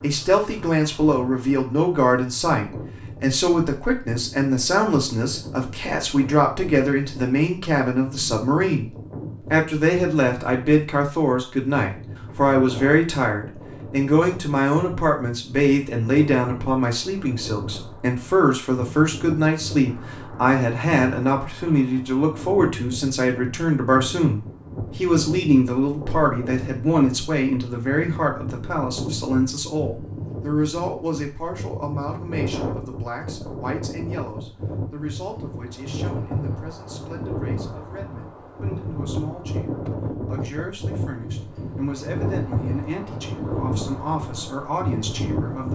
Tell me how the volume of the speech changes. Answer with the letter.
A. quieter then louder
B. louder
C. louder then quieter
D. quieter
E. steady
D.